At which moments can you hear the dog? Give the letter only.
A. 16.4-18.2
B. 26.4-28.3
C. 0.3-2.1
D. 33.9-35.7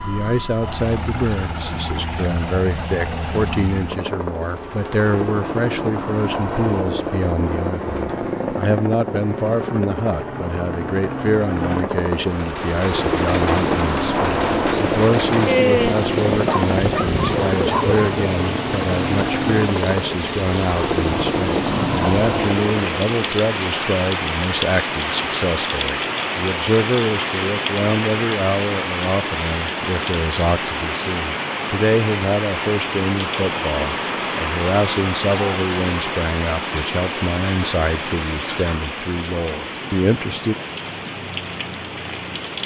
A.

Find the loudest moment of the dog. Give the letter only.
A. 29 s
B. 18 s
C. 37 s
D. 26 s
B.